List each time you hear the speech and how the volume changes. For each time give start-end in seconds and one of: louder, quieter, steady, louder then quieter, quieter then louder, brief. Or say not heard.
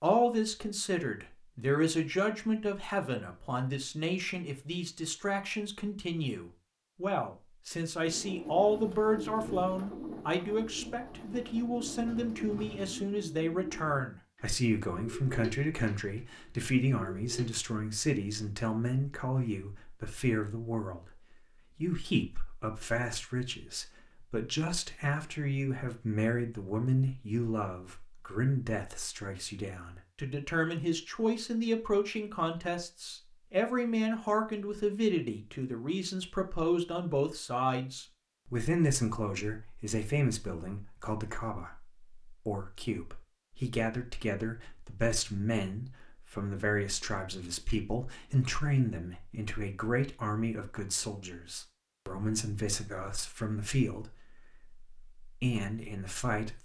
0.0-56.6 steady.